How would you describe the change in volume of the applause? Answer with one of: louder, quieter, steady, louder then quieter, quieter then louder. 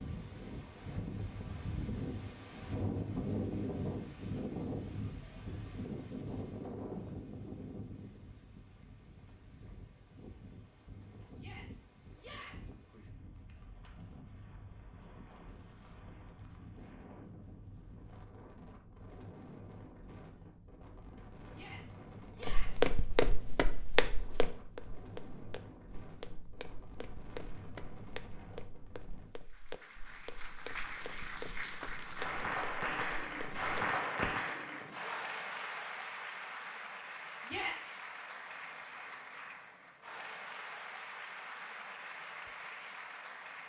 louder then quieter.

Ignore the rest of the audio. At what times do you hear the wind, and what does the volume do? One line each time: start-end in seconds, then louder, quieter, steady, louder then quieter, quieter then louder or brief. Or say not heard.
0.0-29.4 quieter.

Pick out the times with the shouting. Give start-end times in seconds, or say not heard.
11.3-12.8, 21.5-22.9, 37.5-37.9.